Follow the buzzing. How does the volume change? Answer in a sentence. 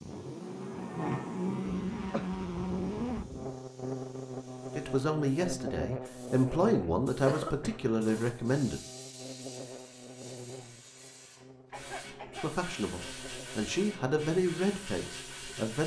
The volume of the buzzing goes down.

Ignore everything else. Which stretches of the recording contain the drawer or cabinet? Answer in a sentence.
You can't hear the drawer or cabinet here.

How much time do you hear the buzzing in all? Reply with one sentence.
You can hear the buzzing for 16 seconds altogether.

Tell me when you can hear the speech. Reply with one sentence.
The speech can be heard from 4.8 to 8.8 s and from 12.3 to 15.8 s.